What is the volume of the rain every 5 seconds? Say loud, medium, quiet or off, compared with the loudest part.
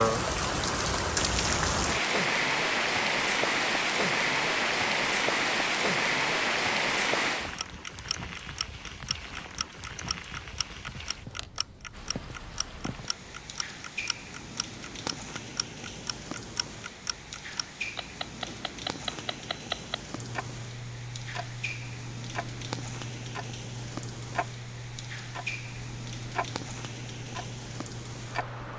loud, loud, quiet, quiet, quiet, quiet.